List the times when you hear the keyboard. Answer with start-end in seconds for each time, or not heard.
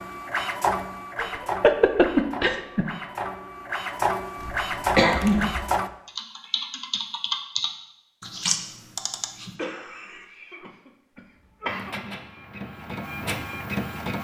4.3-9.6.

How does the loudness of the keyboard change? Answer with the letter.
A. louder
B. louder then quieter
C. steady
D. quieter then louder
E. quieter
A.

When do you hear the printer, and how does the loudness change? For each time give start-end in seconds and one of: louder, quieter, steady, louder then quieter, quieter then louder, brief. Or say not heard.
0.0-5.9 quieter then louder
11.7-14.1 brief.